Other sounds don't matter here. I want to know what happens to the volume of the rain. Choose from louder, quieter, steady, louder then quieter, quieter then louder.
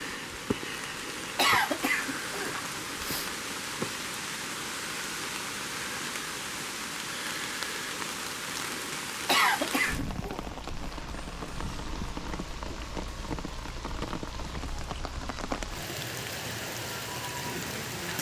steady.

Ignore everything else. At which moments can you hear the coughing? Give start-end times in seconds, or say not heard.
1.4-3.3, 9.2-10.4.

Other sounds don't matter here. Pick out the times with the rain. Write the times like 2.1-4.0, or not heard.
0.0-18.1.